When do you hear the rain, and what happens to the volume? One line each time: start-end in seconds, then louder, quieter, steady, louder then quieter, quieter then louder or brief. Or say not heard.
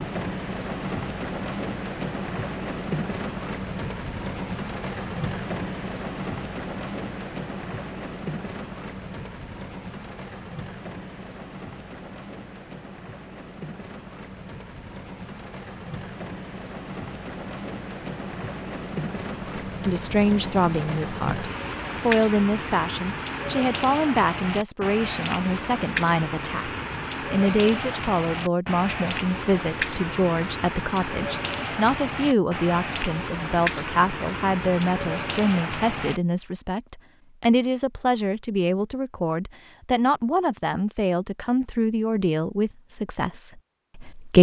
0.0-36.2 quieter then louder.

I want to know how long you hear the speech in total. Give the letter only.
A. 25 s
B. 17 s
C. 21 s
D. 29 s
A.